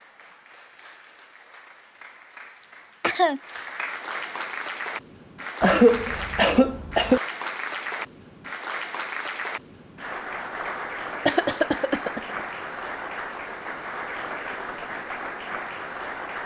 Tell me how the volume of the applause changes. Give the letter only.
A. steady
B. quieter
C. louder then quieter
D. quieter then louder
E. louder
E.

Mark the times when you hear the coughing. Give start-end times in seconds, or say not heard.
2.6-3.4, 5.6-7.2, 11.2-12.2.